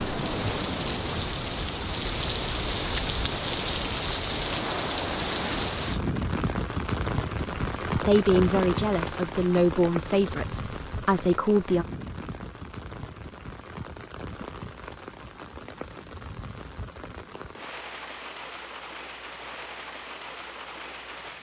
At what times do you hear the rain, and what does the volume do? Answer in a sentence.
The rain can be heard from 0.0 to 21.3 s, getting quieter.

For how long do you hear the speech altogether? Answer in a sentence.
The speech can be heard for 4 seconds in total.